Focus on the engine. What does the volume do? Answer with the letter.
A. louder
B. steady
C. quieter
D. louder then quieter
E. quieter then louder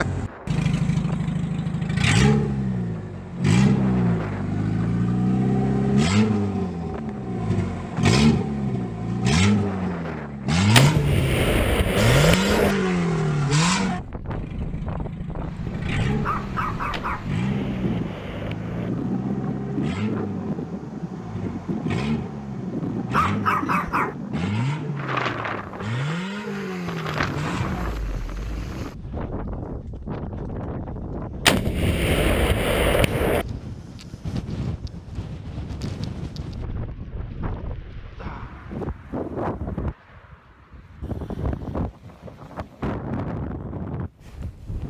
C.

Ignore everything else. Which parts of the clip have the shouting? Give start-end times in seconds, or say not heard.
not heard.